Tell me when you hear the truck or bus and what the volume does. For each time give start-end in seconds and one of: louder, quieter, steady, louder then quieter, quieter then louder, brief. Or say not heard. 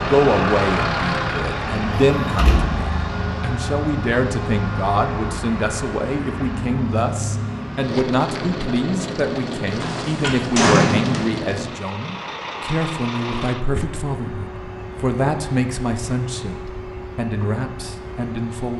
0.0-18.7 quieter.